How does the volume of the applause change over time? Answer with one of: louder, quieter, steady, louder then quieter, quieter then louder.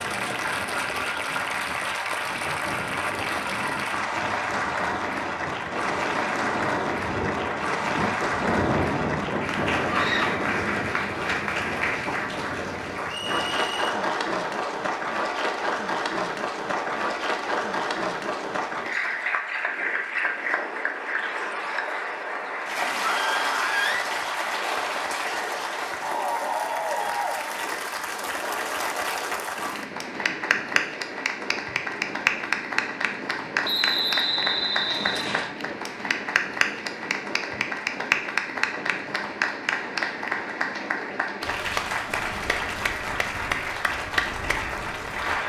steady.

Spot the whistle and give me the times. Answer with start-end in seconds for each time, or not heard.
13.1-13.9, 33.6-35.5.